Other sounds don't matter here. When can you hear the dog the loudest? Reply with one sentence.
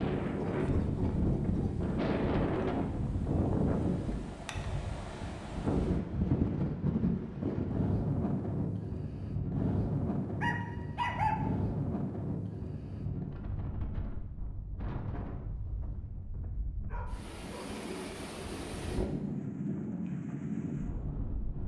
The volume of the dog peaks at 11 seconds.